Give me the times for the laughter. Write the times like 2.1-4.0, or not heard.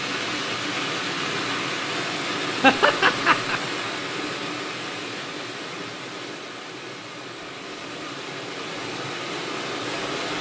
2.6-3.6.